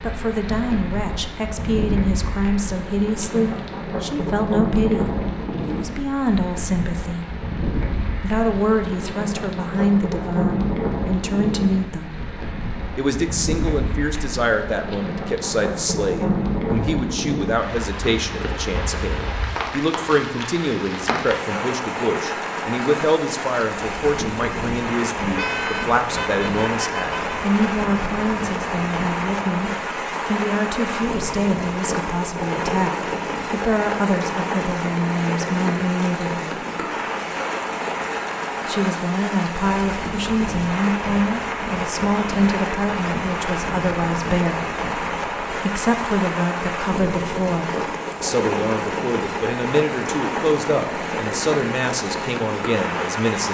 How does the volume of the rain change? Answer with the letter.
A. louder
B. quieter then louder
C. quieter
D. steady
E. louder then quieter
D.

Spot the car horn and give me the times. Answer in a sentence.
You can hear the car horn from 25.4 to 27.4 s.